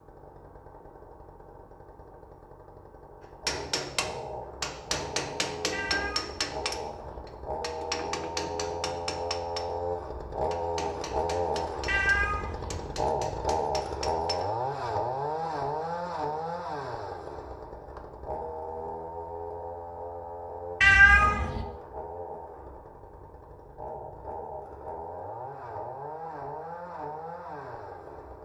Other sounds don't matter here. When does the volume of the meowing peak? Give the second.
21 s.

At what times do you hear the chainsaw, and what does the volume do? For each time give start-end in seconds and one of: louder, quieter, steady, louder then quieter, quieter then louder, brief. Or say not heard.
0.0-28.4 louder then quieter.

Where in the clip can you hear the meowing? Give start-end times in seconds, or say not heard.
5.7-7.2, 11.8-12.9, 20.8-21.6.